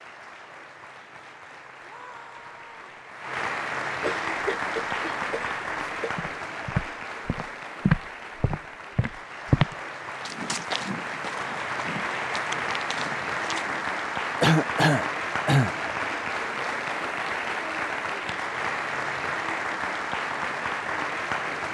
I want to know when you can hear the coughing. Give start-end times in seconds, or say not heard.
4.0-6.2, 14.4-15.8.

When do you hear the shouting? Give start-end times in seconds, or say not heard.
1.8-2.9.